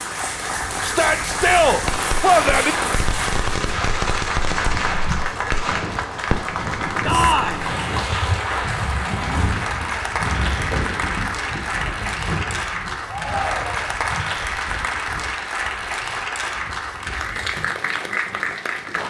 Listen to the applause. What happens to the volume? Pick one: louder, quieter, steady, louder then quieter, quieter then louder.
steady.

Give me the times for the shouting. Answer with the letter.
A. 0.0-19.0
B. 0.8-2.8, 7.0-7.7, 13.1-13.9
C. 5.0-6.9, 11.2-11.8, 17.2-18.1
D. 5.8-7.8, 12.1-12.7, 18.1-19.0
B.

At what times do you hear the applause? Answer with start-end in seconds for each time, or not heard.
0.0-19.0.